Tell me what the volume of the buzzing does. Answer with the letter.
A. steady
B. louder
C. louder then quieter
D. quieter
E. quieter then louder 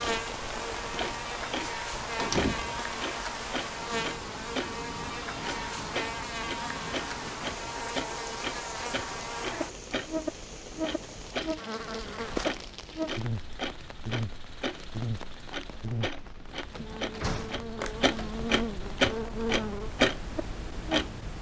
A.